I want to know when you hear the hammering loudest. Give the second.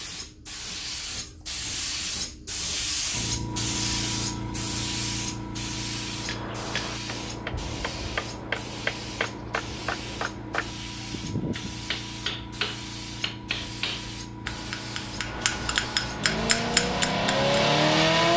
17 s.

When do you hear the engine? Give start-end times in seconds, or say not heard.
16.1-18.3.